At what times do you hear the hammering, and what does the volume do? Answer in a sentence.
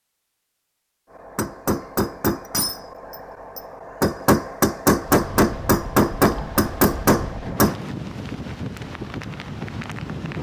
The hammering can be heard from 1.1 to 7.8 s, getting quieter then louder.